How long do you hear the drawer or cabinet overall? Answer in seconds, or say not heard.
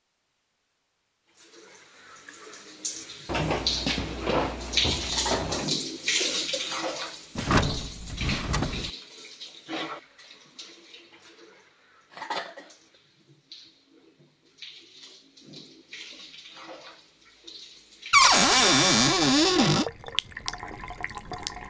6 s.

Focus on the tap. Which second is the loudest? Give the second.
5 s.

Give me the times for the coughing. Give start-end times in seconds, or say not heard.
5.0-6.8, 12.1-12.8.